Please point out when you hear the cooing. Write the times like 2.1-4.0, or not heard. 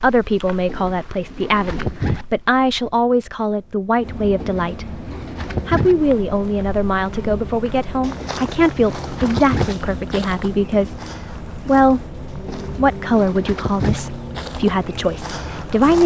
0.7-2.2, 4.4-6.0, 8.2-9.8, 12.4-14.0.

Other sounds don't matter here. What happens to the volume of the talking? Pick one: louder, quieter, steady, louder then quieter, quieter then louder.
steady.